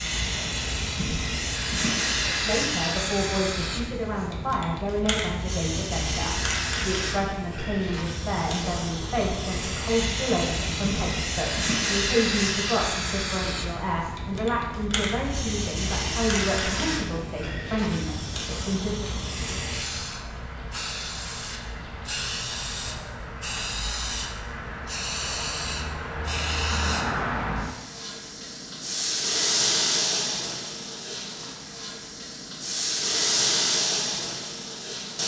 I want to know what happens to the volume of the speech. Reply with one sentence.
The loudness of the speech stays about the same.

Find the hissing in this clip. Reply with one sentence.
The hissing can be heard from 0.0 to 35.2 s.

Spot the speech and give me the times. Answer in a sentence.
You can hear the speech from 2.2 to 19.1 s.